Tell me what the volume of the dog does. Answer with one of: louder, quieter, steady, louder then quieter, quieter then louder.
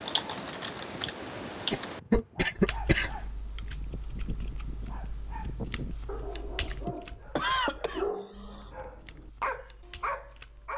louder.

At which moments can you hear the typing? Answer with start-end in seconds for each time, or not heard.
0.0-10.7.